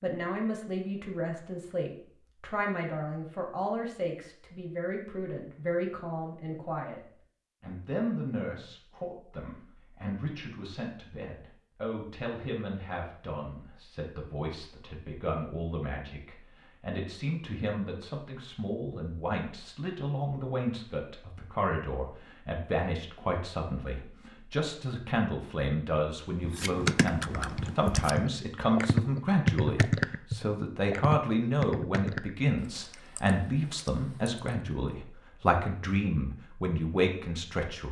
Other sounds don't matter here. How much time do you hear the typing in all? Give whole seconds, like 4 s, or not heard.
8 s.